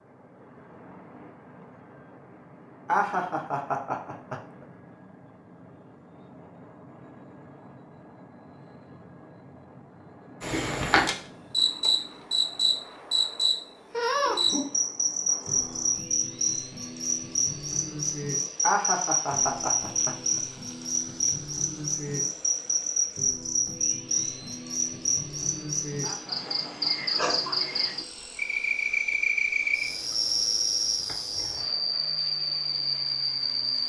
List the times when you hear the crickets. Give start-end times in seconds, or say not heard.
10.4-33.8.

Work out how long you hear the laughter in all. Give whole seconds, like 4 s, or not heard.
4 s.